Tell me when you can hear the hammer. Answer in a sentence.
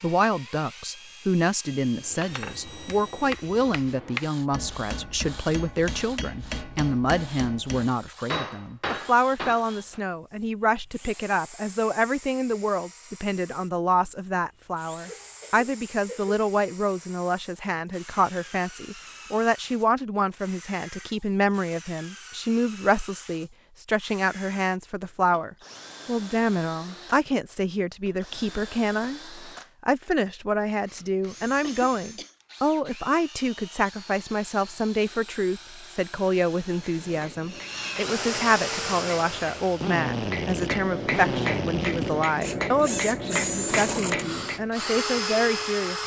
You can hear the hammer from 2.0 to 10.0 s and from 36.6 to 44.6 s.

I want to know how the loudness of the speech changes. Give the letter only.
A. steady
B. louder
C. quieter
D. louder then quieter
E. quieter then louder
A.